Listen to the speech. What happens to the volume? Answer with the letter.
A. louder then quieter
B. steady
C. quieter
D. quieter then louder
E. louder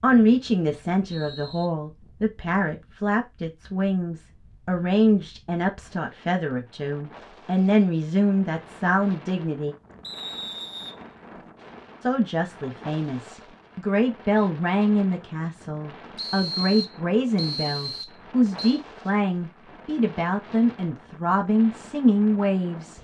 B.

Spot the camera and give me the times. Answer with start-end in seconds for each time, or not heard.
not heard.